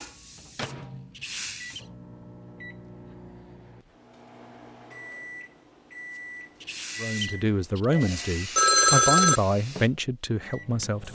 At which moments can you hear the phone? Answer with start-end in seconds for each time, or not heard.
7.9-9.4.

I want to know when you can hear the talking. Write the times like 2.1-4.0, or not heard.
7.0-11.0.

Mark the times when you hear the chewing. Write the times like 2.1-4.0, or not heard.
not heard.